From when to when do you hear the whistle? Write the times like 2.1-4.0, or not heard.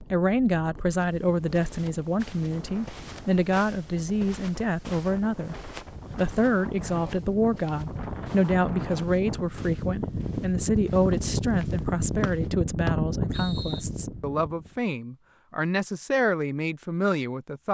12.2-13.8.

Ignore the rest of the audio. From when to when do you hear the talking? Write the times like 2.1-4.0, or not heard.
0.1-17.6.